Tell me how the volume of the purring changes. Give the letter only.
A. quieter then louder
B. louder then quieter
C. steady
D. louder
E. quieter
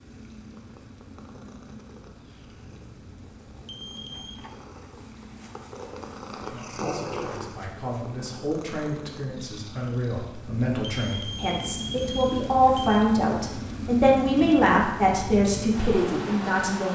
B.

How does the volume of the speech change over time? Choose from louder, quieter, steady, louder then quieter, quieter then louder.
louder.